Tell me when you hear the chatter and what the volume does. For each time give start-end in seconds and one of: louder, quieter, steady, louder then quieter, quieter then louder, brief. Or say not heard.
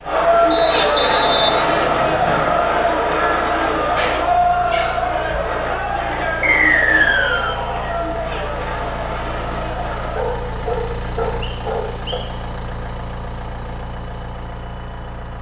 0.0-10.3 quieter.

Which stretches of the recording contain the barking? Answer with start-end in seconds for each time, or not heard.
3.9-5.5, 10.2-12.2.